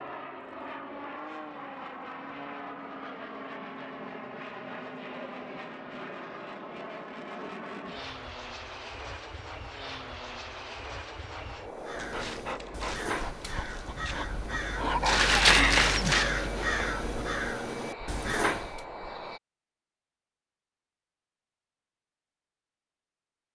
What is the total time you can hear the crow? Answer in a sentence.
You can hear the crow for 7 seconds altogether.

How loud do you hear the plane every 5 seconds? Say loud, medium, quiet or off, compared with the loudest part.
loud, loud, loud, loud, off.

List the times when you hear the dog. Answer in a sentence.
The dog can be heard from 11.9 to 17.4 s.